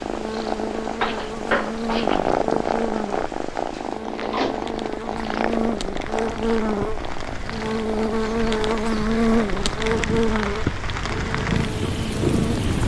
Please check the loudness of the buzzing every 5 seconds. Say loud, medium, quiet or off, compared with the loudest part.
medium, loud, loud.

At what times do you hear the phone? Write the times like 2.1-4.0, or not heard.
0.9-2.3.